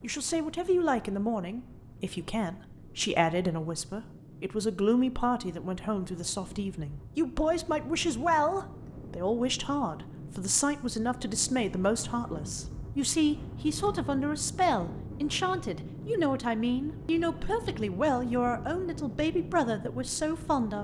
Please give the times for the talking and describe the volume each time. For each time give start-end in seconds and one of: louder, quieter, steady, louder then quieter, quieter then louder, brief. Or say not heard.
0.0-20.7 steady.